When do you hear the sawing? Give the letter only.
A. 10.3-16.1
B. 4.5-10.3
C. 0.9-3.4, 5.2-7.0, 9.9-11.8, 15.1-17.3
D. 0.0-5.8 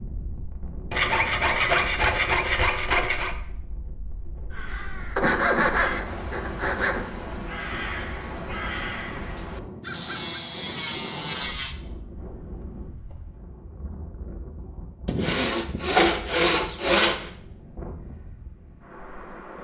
C.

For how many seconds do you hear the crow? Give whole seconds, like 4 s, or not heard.
6 s.